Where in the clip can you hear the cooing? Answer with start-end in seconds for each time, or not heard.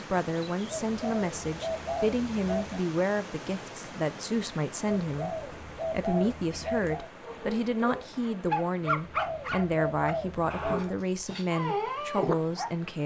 0.8-2.8, 5.0-7.1, 8.8-10.8.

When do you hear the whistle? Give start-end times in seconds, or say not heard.
not heard.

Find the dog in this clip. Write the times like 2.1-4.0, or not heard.
7.2-12.7.